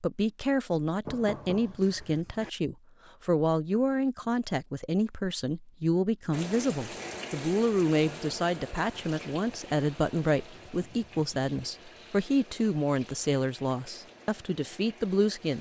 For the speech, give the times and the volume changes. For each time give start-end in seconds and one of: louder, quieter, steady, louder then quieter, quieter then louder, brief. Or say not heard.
0.0-15.5 steady.